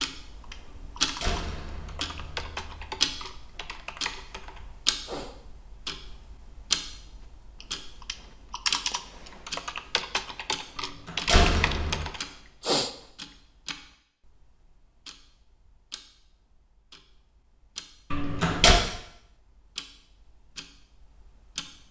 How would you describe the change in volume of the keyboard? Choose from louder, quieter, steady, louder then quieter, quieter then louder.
louder.